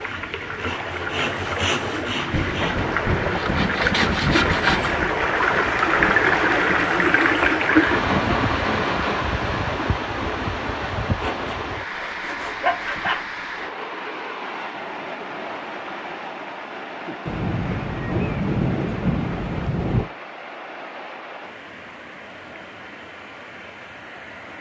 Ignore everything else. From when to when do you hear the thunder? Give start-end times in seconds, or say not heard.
2.3-6.3, 17.2-20.1.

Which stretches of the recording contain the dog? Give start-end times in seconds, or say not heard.
not heard.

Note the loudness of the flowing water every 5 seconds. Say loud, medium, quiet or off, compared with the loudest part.
medium, loud, medium, quiet, quiet.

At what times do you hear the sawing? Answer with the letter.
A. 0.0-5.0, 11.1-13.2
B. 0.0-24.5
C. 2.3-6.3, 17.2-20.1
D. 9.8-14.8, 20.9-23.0
A.